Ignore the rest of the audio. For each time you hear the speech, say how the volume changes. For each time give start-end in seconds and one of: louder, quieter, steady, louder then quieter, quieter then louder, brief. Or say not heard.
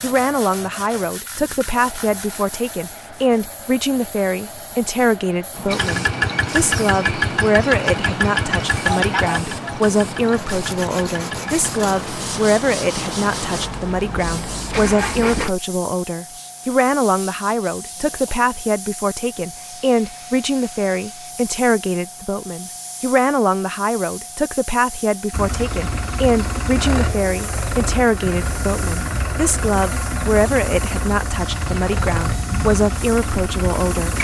0.0-34.1 steady.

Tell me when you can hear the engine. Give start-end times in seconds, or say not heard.
5.7-15.5, 25.3-34.1.